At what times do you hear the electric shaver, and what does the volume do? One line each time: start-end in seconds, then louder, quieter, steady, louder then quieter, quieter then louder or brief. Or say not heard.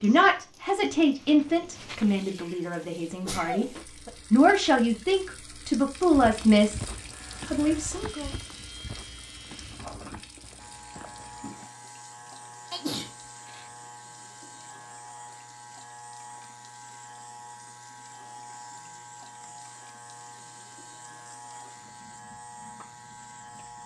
7.0-23.8 steady.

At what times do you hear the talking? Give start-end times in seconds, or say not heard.
0.0-3.6, 4.3-6.8, 7.5-8.3.